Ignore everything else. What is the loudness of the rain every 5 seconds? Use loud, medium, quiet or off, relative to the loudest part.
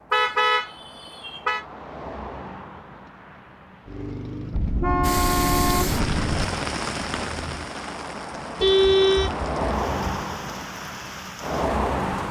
off, loud, medium.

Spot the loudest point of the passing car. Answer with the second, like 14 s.
12 s.